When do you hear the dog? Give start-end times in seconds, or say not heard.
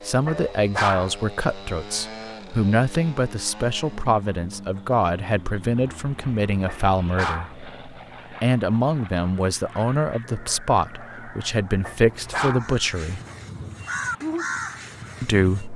0.2-1.1, 6.7-7.5, 11.8-12.7.